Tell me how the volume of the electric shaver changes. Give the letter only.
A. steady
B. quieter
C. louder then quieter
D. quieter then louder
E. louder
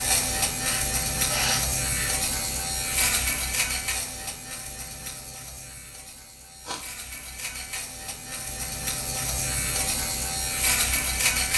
D.